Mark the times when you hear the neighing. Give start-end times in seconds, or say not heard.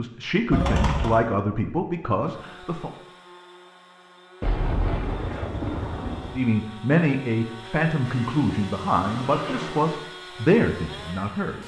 0.5-1.2, 8.1-10.1.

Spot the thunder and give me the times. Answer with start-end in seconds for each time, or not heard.
4.4-6.4.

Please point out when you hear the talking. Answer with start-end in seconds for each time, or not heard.
0.0-2.9, 6.3-11.6.